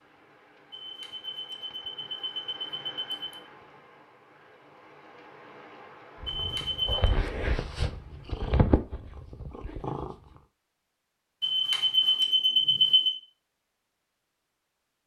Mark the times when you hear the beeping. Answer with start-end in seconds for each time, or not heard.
0.7-3.4, 6.2-7.1, 11.4-13.2.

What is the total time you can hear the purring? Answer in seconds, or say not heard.
4 s.